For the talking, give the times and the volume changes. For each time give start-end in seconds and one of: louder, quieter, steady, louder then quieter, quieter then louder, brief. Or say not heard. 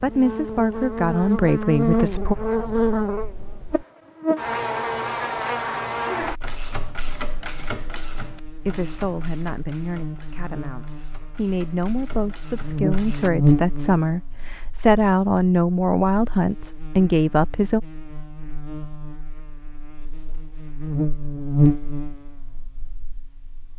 0.0-2.4 brief
8.5-17.8 louder.